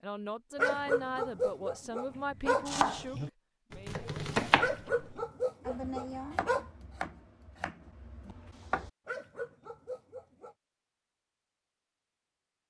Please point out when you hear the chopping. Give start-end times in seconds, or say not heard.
2.6-8.9.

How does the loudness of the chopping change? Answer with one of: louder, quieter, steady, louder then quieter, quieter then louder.
louder then quieter.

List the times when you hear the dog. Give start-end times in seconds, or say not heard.
0.6-2.7, 4.5-6.7, 9.1-10.6.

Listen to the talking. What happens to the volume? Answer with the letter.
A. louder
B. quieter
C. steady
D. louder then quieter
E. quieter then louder
B.